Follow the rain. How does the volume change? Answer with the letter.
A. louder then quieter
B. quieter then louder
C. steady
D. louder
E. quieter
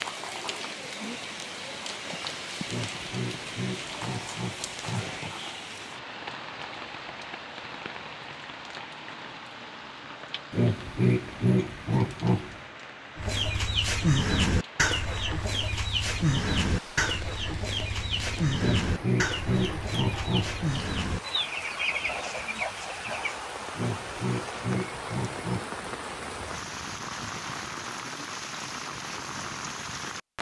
B.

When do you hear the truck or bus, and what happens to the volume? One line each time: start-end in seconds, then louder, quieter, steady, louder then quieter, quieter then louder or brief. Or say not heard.
not heard.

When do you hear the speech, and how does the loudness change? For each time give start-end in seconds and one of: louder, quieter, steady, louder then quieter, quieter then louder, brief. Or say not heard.
not heard.